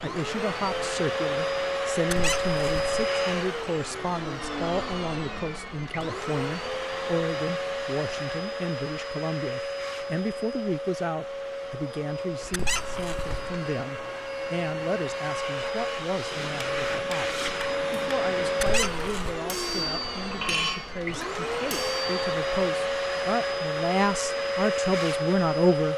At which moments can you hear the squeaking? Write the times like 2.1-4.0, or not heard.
2.1-3.1, 12.5-13.5, 18.6-19.4.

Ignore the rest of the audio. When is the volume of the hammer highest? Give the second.
21 s.